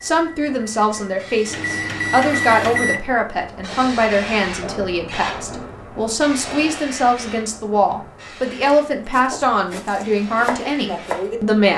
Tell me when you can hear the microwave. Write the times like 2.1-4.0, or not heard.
0.0-3.0.